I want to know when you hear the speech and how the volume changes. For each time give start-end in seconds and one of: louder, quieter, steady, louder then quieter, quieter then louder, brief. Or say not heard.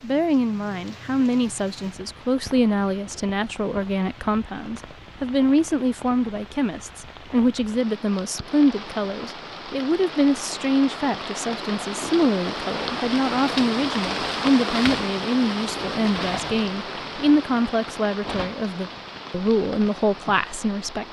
0.0-21.0 steady.